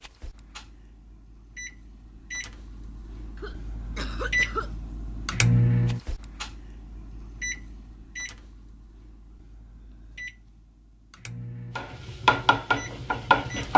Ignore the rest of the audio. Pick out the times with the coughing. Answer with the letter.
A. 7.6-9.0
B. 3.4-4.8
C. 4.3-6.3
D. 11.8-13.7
B.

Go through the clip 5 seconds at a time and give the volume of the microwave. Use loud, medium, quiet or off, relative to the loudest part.
medium, loud, quiet.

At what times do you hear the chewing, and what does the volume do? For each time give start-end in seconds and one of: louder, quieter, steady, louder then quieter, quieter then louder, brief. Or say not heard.
not heard.